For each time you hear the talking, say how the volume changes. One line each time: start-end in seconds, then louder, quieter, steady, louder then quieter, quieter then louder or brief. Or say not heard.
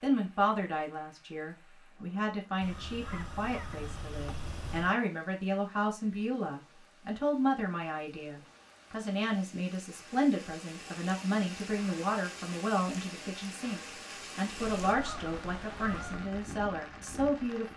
0.0-17.7 steady.